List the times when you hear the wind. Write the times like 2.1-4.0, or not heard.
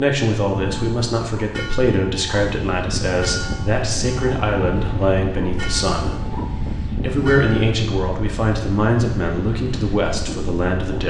3.4-11.0.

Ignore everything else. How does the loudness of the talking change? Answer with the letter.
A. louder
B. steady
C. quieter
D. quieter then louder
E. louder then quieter
B.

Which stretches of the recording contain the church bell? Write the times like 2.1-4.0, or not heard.
0.4-7.8.